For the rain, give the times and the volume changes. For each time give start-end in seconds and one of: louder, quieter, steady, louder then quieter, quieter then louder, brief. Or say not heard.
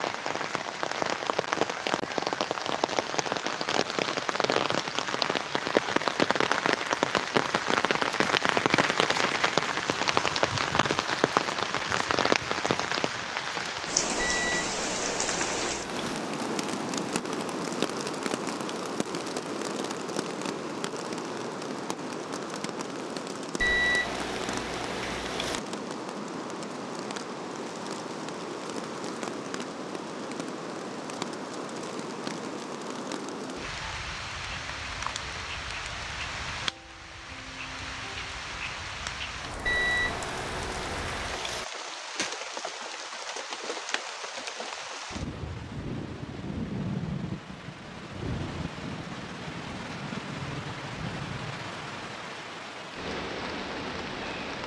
0.0-54.6 quieter.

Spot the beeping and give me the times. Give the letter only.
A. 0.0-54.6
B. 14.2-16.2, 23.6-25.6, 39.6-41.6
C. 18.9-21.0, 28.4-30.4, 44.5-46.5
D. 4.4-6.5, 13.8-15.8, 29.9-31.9
B.